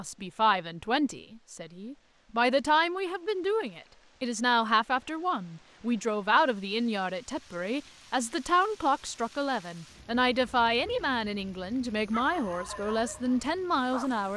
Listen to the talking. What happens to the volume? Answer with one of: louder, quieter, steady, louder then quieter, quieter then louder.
steady.